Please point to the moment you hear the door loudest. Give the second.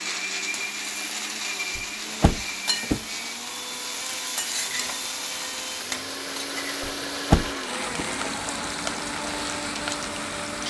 7 s.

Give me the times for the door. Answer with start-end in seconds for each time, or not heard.
1.8-3.0, 6.8-8.1.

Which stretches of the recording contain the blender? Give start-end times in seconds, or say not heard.
0.0-10.6.